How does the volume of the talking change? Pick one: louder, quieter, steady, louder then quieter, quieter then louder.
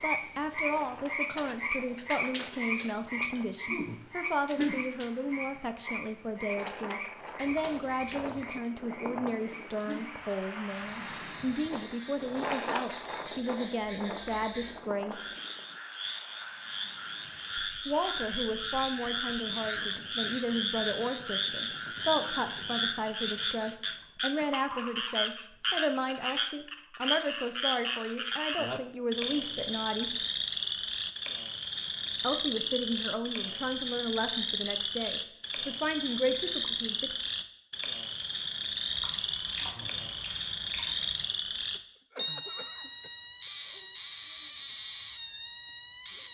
steady.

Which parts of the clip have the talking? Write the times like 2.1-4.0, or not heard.
0.0-15.3, 17.9-30.1, 32.2-37.2.